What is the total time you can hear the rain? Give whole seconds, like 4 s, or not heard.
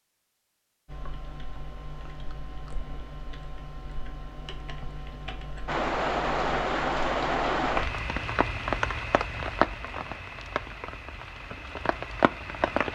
7 s.